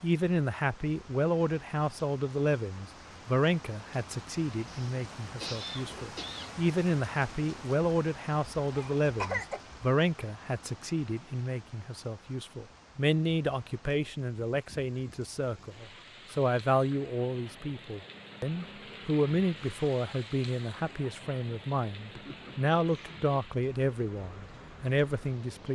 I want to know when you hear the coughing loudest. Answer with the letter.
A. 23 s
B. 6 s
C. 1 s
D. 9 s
D.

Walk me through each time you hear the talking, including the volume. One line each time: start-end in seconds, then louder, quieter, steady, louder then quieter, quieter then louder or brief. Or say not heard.
0.0-25.7 steady.